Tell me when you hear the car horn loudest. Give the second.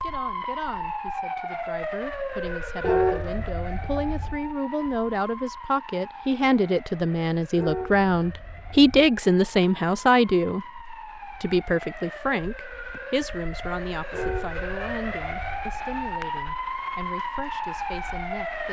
3 s.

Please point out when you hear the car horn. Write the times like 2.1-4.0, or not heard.
2.8-4.3, 7.5-9.1, 14.1-15.7.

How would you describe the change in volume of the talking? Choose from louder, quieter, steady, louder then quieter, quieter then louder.
louder then quieter.